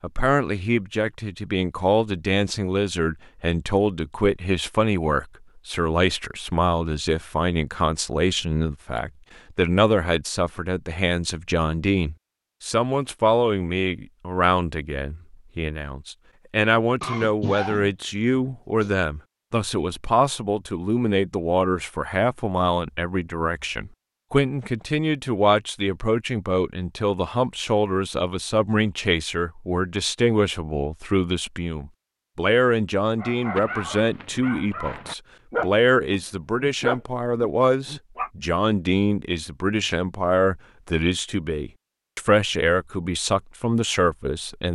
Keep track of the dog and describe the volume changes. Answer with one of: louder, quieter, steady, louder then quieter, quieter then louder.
louder then quieter.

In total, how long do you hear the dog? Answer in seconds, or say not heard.
5 s.